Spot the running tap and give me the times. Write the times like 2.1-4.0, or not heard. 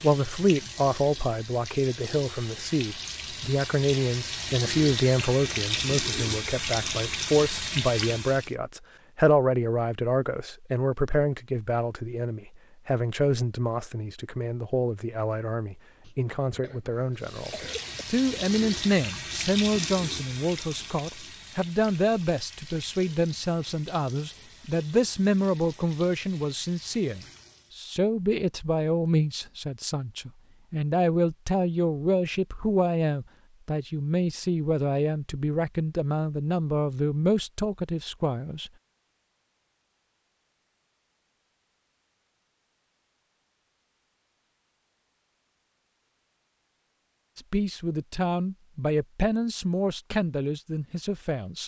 0.0-8.6, 17.1-27.8.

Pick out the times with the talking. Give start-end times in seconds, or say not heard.
0.0-38.7, 47.4-51.6.